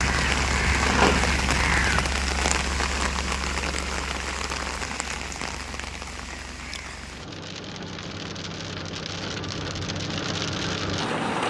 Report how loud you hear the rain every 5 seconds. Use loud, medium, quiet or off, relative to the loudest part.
loud, medium, loud.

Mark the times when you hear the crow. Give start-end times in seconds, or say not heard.
0.0-2.1.